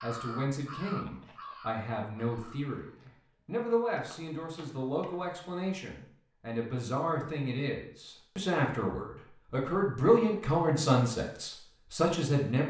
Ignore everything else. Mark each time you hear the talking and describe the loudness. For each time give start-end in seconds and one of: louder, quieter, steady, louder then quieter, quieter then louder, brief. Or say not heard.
0.0-12.6 louder.